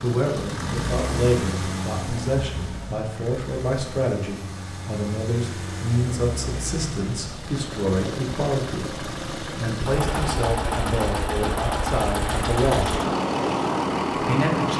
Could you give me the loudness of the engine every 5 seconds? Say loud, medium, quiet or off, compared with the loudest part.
medium, medium, loud.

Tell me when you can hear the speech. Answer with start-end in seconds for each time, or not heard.
0.0-12.9, 14.2-14.7.